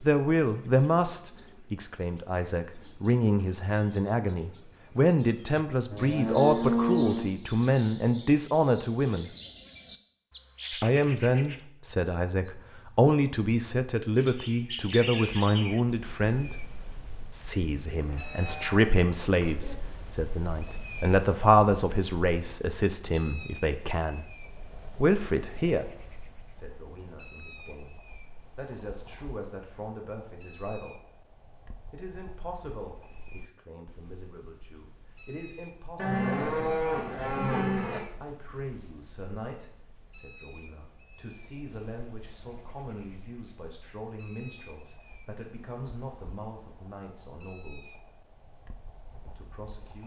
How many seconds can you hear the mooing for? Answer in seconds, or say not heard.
5 s.